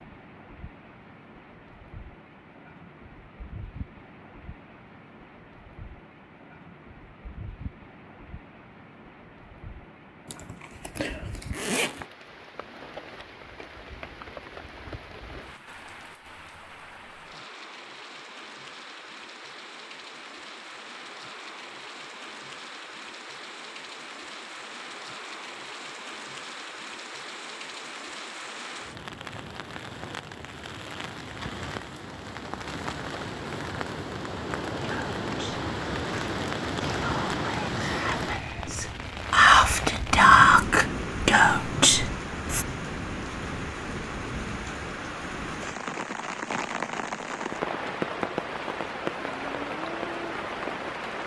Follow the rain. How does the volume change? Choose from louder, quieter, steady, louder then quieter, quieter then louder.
louder.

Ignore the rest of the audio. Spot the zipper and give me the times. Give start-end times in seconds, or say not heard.
10.2-12.1.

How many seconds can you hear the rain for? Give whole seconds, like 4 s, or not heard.
51 s.